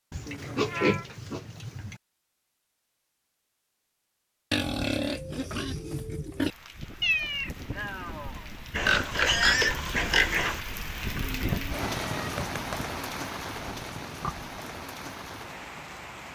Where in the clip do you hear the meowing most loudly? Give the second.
7 s.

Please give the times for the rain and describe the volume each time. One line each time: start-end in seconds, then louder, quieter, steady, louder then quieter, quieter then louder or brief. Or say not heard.
6.4-16.3 louder then quieter.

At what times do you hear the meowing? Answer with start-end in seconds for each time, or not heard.
0.2-1.1, 7.0-8.4, 11.9-12.9.